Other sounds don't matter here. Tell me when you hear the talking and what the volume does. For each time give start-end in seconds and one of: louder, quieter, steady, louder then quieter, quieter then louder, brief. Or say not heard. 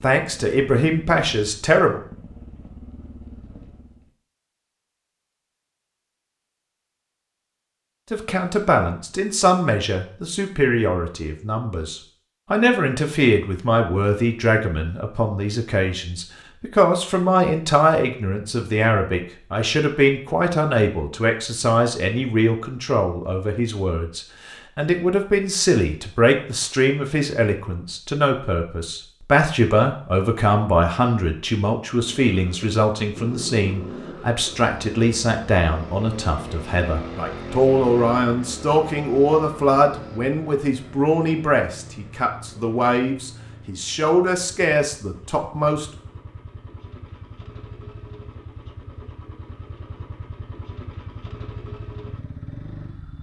0.0-2.0 brief
8.1-45.9 steady.